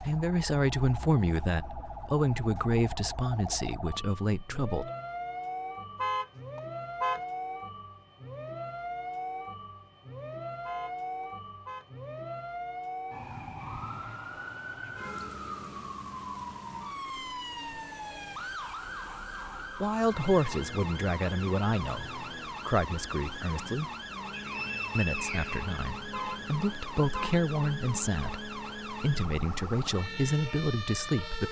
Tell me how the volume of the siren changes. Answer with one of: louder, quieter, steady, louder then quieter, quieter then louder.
steady.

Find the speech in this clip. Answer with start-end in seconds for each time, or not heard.
0.0-4.9, 19.8-23.9, 24.9-31.4.